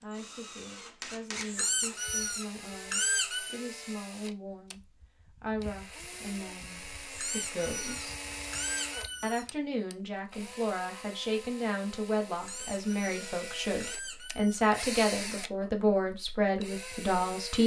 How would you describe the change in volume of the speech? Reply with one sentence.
The volume of the speech goes up.